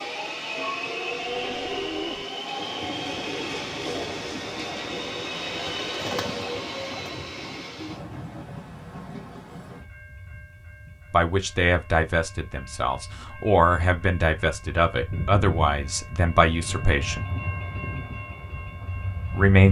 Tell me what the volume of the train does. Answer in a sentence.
The volume of the train goes down, then up.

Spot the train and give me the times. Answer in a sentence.
You can hear the train from 0.0 to 19.6 s.